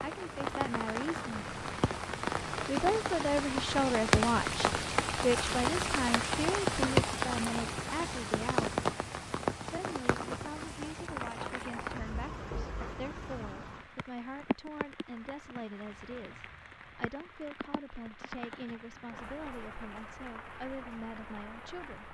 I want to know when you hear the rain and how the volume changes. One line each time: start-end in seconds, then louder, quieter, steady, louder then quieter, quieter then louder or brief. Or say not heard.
0.0-22.1 quieter.